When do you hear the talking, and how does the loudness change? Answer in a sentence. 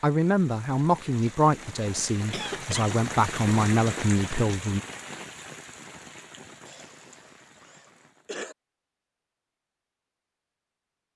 The talking can be heard from 0.0 to 4.8 s, getting quieter then louder.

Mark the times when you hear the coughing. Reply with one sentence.
You can hear the coughing from 2.3 to 3.0 s and from 6.7 to 8.6 s.